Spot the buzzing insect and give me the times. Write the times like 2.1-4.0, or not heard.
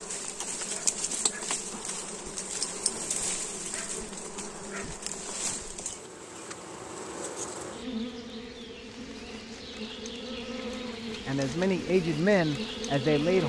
0.0-13.4.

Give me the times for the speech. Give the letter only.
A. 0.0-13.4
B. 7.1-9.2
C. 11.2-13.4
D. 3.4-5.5
C.